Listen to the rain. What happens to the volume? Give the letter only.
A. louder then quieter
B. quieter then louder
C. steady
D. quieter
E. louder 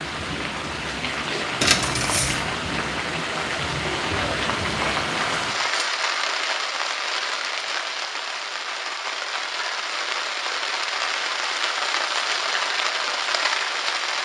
C.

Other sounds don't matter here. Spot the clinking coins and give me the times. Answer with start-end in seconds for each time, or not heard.
1.6-2.4.